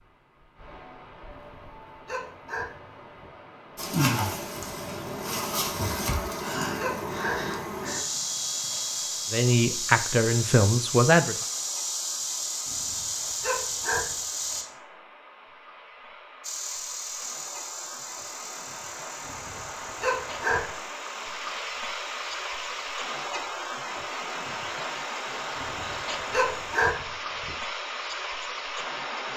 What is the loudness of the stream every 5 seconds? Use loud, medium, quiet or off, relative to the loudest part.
quiet, quiet, quiet, medium, loud, loud.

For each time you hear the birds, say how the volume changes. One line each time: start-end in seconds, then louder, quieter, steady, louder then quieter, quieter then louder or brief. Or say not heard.
not heard.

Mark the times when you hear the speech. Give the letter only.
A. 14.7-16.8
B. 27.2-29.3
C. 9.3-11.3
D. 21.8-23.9
C.